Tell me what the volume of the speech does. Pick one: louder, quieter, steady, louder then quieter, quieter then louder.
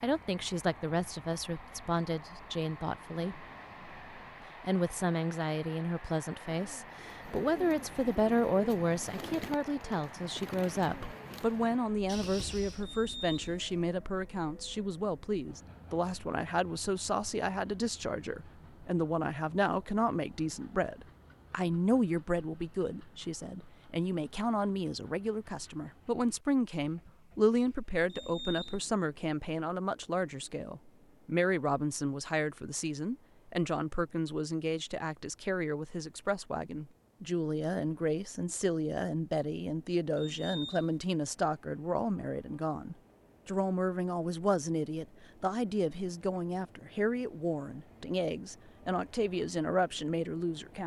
steady.